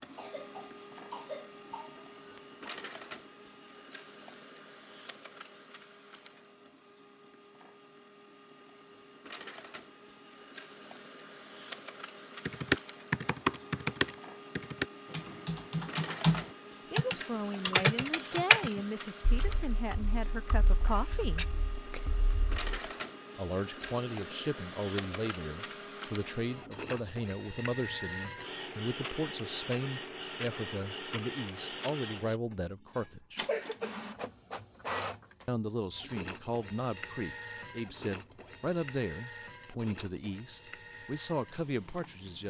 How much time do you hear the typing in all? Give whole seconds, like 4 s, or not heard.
10 s.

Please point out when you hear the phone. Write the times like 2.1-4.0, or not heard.
not heard.